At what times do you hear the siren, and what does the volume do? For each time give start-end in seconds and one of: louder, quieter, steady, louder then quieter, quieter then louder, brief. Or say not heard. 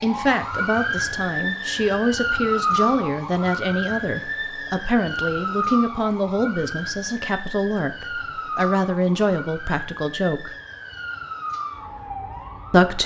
0.0-13.0 quieter.